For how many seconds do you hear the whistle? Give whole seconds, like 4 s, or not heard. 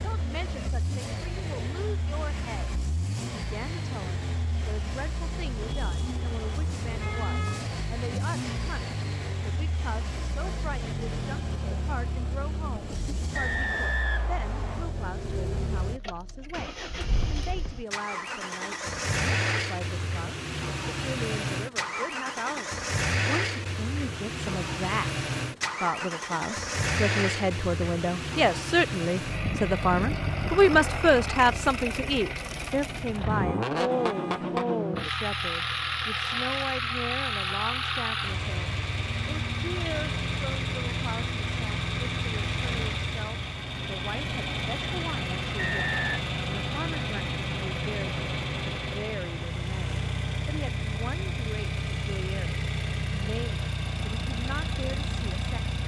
2 s.